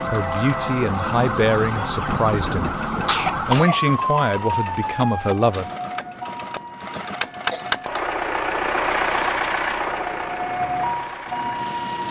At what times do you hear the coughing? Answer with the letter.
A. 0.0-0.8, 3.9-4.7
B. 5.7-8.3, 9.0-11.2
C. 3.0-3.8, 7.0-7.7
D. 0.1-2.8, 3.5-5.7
C.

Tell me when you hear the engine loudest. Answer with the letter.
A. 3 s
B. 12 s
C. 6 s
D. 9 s
D.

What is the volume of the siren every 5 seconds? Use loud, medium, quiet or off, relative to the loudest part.
loud, medium, loud.